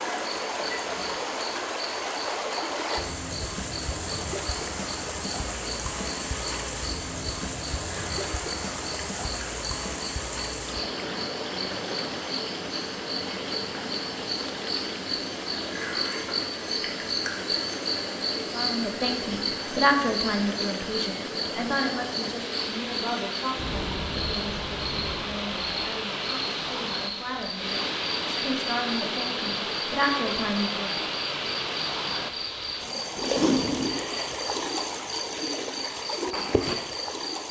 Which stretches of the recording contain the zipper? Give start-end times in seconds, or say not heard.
33.1-34.1.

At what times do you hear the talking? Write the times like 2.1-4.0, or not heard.
18.5-30.9.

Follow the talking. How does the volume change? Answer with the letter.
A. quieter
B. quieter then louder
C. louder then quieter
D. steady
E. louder
B.